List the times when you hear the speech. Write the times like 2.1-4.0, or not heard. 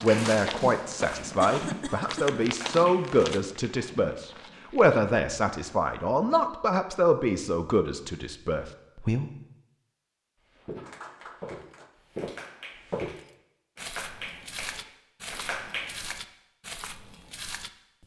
0.0-9.3.